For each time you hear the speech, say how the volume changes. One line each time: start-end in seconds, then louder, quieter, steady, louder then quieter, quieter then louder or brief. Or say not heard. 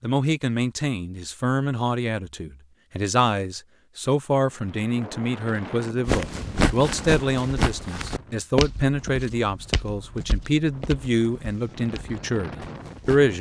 0.0-13.3 steady.